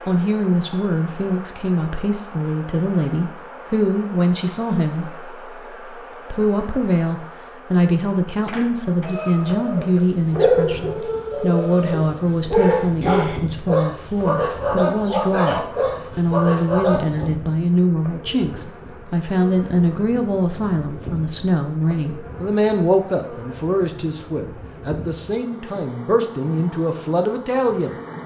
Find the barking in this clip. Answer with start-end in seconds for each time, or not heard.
9.0-17.2.